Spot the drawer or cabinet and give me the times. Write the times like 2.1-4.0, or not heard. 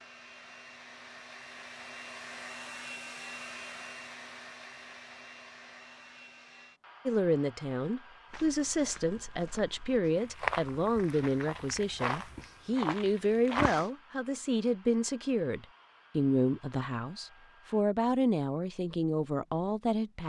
not heard.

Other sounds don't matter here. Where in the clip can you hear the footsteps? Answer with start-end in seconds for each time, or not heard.
8.3-13.9.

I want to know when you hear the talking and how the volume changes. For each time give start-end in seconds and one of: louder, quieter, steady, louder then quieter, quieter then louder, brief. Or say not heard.
7.0-20.2 steady.